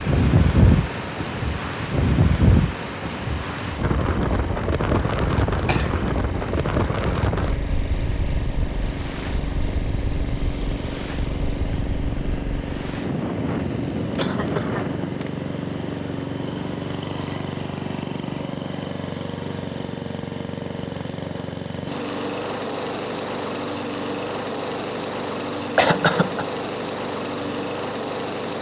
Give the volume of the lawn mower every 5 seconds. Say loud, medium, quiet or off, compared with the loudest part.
medium, medium, loud, loud, loud, loud.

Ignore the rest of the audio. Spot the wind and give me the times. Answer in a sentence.
You can hear the wind from 0.0 to 15.2 s.